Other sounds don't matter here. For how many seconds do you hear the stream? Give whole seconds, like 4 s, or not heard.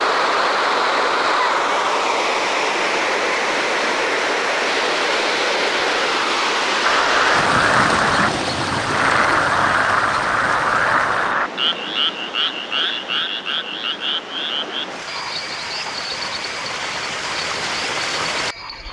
19 s.